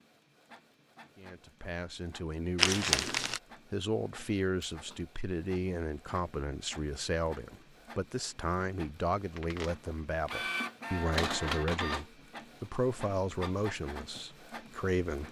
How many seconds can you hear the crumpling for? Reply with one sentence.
The crumpling can be heard for 2 seconds in total.